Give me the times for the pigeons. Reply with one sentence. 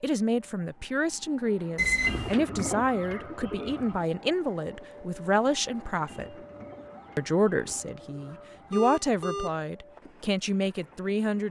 You can hear the pigeons from 2.0 to 4.0 s and from 6.0 to 8.8 s.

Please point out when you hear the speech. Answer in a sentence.
The speech can be heard from 0.0 to 6.3 s and from 7.2 to 11.4 s.